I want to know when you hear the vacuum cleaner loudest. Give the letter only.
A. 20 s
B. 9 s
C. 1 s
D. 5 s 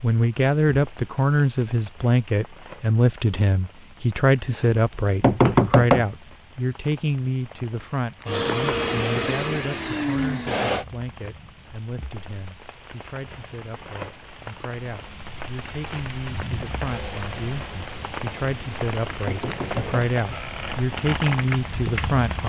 B.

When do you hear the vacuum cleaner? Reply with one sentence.
You can hear the vacuum cleaner from 8.2 to 10.8 s and from 16.8 to 20.1 s.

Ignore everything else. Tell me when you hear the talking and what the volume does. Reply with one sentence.
You can hear the talking from 0.0 to 22.4 s, getting quieter then louder.